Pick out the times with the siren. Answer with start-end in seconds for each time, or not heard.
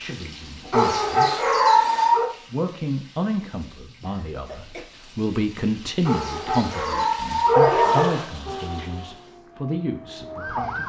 8.4-10.8.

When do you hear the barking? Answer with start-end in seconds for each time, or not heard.
0.7-2.3, 6.0-8.2.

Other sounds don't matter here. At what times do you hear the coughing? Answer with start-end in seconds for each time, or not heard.
4.0-4.8.